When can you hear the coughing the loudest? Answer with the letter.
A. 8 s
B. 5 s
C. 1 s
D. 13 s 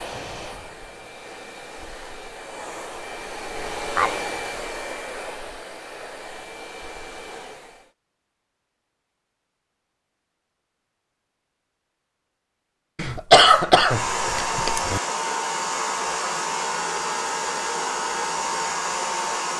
D.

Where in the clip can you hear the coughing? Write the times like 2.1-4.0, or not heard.
3.8-4.2, 12.9-15.0.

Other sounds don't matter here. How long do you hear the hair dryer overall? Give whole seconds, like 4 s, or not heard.
14 s.